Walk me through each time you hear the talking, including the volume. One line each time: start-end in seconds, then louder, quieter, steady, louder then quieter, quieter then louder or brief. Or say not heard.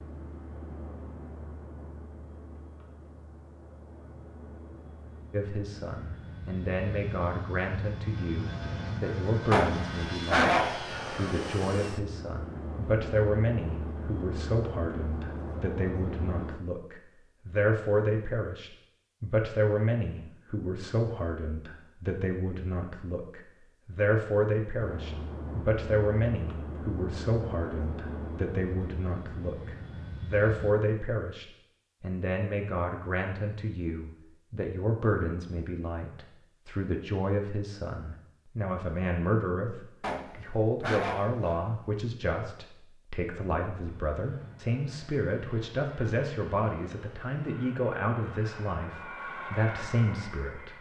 5.3-50.7 steady.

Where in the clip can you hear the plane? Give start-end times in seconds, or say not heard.
0.0-16.6, 24.8-30.8, 43.9-50.7.